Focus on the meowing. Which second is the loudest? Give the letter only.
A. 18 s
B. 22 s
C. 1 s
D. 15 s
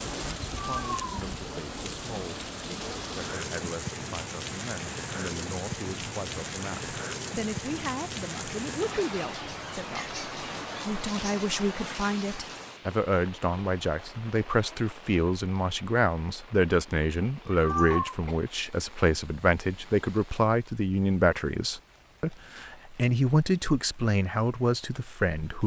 A.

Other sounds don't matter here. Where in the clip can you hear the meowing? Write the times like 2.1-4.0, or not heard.
0.5-1.1, 17.5-18.1.